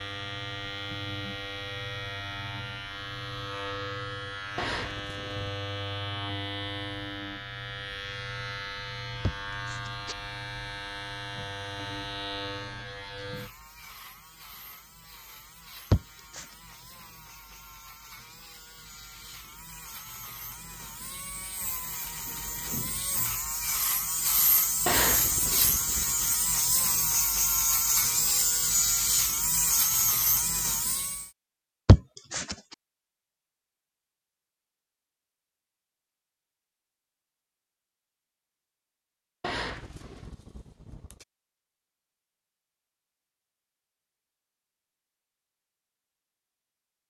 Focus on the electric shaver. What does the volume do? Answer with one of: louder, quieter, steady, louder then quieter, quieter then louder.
quieter then louder.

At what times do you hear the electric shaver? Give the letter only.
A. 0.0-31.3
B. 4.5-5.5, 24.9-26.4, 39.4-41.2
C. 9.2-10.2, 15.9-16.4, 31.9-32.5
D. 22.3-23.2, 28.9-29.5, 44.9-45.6
A.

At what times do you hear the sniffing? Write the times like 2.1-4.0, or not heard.
9.2-10.2, 15.9-16.4, 31.9-32.5.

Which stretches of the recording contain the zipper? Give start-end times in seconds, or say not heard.
4.5-5.5, 24.9-26.4, 39.4-41.2.